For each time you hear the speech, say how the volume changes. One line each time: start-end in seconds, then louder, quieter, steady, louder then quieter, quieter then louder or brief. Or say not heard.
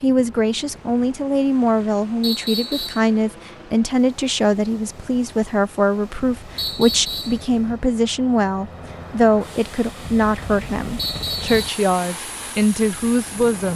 0.0-13.7 steady.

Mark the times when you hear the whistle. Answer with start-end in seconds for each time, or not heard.
2.2-3.0, 6.5-7.4, 10.9-11.6.